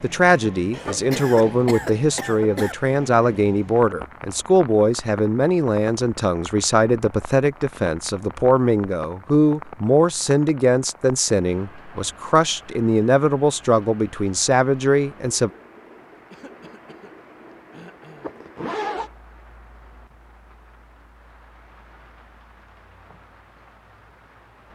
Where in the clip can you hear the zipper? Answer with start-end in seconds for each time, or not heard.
18.2-19.1.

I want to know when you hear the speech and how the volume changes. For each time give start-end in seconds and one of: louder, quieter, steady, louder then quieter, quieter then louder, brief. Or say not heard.
0.0-15.5 steady.